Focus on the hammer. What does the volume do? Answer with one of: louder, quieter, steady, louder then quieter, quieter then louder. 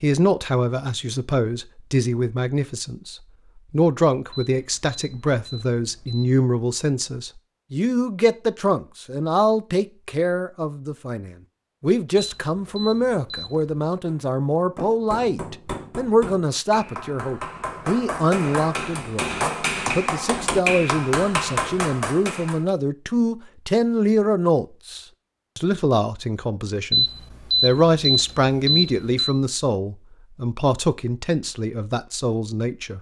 louder.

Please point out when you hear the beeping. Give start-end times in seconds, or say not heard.
4.3-6.3, 12.2-13.7, 26.9-29.4.